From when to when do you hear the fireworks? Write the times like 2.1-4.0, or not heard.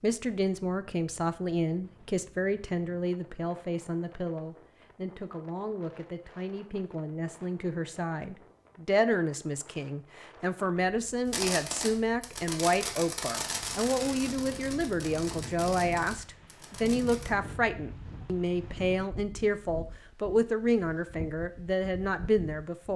11.2-17.3.